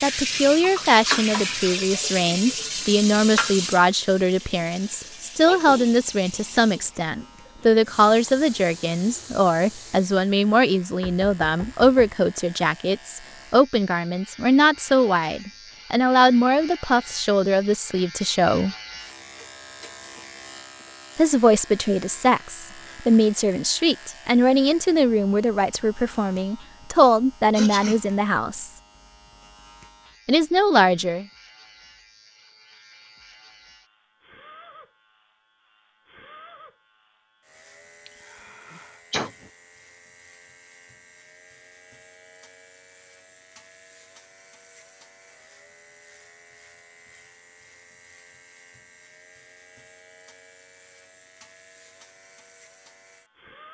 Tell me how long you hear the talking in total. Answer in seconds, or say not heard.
27 s.